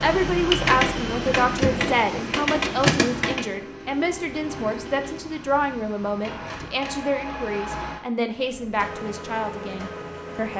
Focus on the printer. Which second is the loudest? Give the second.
3 s.